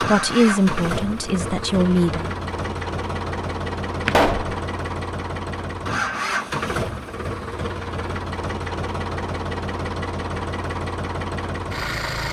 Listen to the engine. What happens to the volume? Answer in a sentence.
The volume of the engine stays about the same.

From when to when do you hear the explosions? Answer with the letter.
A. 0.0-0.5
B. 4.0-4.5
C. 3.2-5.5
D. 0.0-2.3
B.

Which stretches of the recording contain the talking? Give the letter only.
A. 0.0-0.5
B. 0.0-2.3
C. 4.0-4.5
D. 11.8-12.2
B.